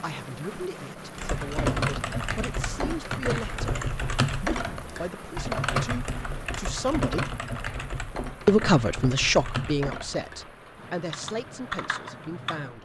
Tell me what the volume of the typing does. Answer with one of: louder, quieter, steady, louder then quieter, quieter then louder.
quieter.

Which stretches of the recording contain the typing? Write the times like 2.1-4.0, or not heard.
1.1-12.8.